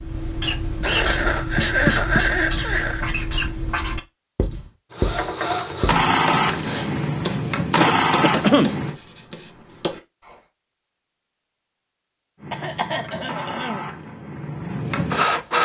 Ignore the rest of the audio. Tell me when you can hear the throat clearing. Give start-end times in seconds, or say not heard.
0.8-3.0, 7.8-8.7, 12.5-13.8.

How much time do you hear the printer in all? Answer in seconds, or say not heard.
7 s.